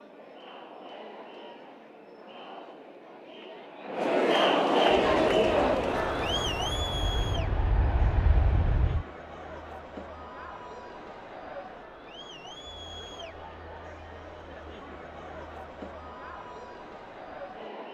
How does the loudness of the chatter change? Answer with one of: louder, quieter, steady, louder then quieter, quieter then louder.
louder then quieter.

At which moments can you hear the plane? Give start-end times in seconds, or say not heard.
4.8-9.1.